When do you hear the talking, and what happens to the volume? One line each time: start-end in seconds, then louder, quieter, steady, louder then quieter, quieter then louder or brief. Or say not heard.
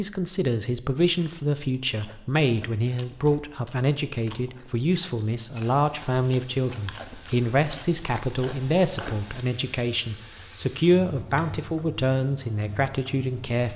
0.0-13.7 steady.